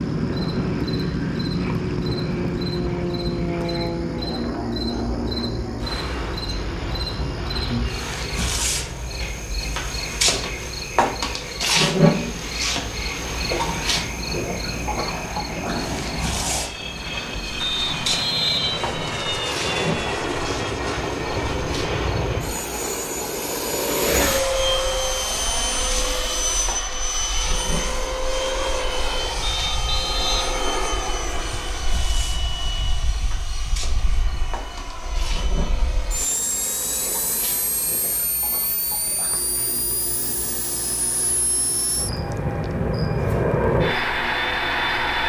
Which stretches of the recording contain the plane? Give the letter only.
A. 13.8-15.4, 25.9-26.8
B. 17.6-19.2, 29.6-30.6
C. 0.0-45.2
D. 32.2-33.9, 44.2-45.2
C.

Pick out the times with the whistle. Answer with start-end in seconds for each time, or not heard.
17.6-19.2, 29.6-30.6.